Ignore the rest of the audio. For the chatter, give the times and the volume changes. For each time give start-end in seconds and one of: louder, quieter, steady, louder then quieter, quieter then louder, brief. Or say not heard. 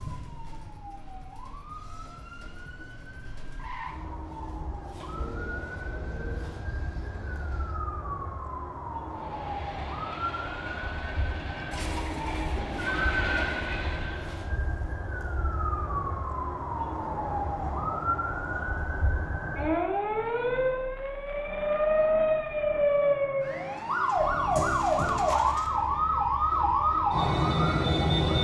not heard.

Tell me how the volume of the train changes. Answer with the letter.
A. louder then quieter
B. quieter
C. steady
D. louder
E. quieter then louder
D.